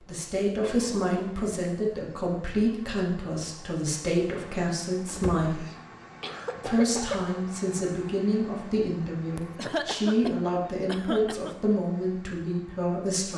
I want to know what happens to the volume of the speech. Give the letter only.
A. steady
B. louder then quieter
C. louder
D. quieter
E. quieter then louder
A.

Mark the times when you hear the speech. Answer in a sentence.
The speech can be heard from 0.1 to 5.7 s and from 6.7 to 13.3 s.